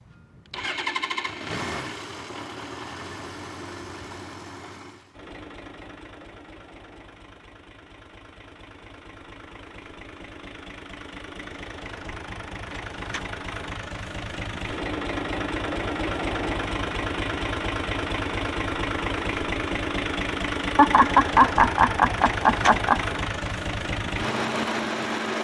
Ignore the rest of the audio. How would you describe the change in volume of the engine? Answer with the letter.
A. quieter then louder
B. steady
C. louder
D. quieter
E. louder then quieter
A.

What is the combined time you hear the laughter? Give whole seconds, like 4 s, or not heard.
2 s.